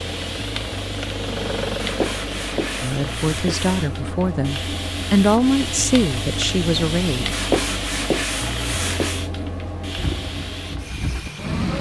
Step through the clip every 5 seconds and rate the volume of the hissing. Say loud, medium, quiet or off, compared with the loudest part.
loud, loud, medium.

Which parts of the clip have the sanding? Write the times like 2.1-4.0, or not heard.
1.8-4.0, 7.3-9.2.